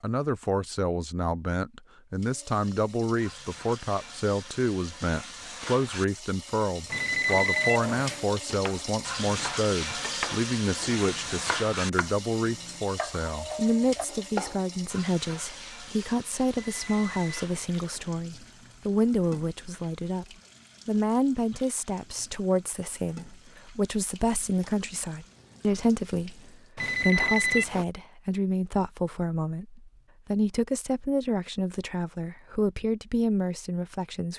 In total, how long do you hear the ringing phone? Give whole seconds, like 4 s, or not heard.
4 s.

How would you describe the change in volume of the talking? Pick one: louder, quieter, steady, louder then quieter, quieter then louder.
steady.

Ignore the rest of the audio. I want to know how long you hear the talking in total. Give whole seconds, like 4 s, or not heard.
34 s.